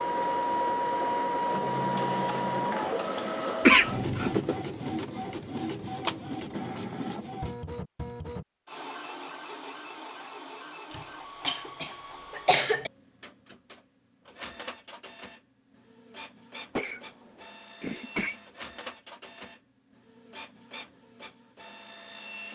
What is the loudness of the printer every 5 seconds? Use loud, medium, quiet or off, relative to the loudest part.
loud, medium, quiet, quiet, quiet.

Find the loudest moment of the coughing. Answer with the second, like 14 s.
4 s.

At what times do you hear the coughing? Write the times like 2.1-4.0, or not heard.
3.6-4.3, 10.9-12.9, 16.8-18.4.